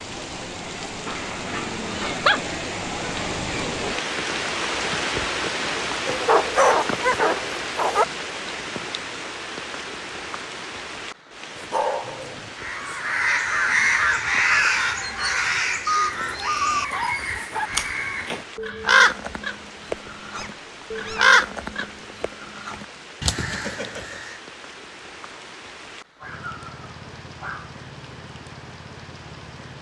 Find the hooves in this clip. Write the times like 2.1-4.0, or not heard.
not heard.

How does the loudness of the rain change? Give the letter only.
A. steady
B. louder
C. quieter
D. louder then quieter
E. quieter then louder
C.